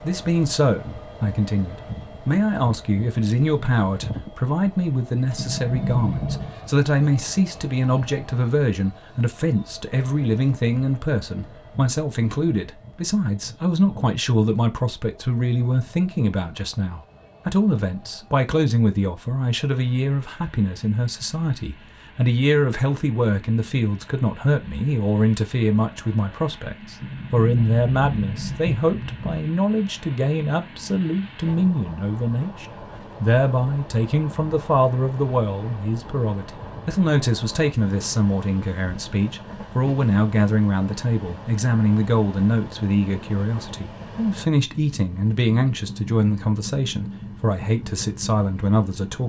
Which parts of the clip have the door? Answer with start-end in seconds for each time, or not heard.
5.3-6.5, 27.0-29.4.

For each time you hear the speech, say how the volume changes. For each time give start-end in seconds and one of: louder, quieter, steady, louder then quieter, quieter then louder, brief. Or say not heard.
0.0-49.2 steady.